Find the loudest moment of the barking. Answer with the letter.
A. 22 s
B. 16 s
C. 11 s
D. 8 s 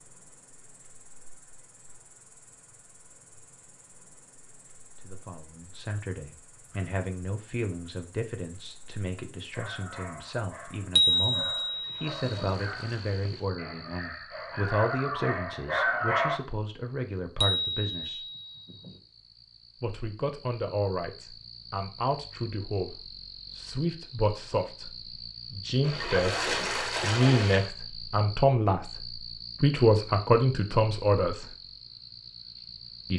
B.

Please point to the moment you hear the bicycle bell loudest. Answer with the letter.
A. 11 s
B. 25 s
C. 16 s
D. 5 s
A.